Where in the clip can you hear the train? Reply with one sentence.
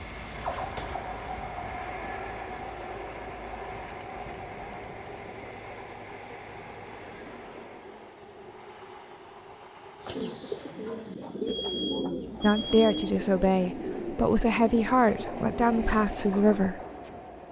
The train can be heard from 0.0 to 10.9 s and from 12.2 to 17.4 s.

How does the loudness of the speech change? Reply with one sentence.
The volume of the speech stays about the same.